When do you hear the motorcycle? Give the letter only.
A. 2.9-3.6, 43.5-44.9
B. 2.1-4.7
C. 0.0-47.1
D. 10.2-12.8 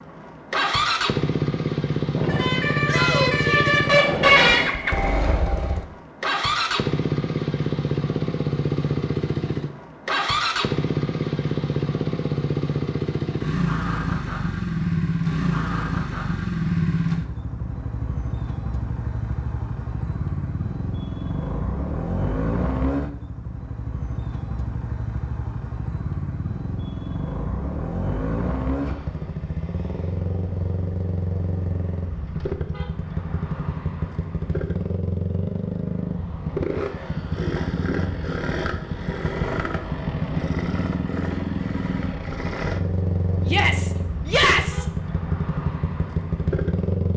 C.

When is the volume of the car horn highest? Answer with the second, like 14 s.
4 s.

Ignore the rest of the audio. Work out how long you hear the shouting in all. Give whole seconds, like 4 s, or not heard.
2 s.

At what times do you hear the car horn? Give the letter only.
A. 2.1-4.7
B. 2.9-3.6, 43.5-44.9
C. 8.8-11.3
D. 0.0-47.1
A.